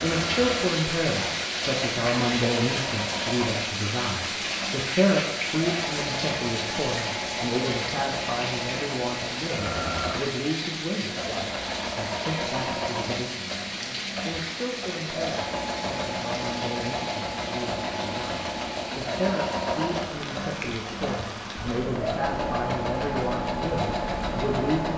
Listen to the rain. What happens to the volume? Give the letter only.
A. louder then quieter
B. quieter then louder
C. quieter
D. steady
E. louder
C.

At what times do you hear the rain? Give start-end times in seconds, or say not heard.
0.0-24.9.